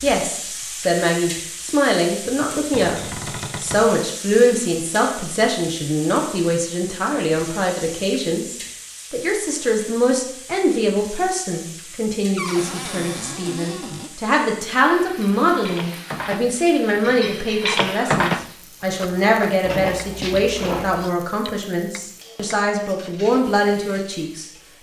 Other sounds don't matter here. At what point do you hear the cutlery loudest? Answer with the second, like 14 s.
18 s.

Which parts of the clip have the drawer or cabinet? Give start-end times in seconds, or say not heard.
2.7-3.9, 12.3-14.1, 19.6-21.1.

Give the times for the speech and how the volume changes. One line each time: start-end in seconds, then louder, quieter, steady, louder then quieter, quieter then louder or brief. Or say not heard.
0.0-3.0 brief
3.6-24.4 steady.